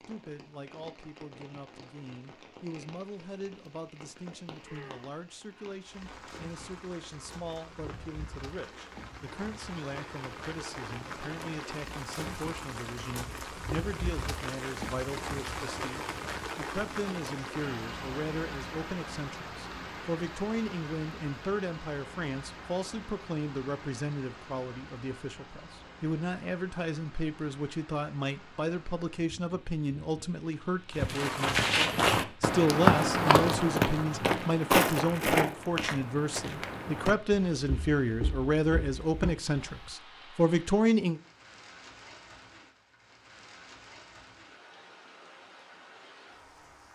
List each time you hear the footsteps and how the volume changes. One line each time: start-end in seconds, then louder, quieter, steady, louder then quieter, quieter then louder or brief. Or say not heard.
30.9-39.9 quieter.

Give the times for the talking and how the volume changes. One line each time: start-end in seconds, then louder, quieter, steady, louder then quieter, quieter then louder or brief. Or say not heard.
0.0-41.2 louder.